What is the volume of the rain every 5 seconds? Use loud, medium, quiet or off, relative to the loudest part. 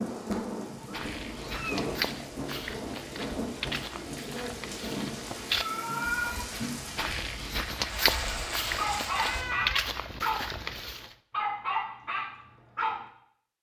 loud, loud, off.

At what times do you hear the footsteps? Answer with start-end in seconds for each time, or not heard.
0.8-11.2.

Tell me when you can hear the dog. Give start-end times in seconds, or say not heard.
8.1-13.1.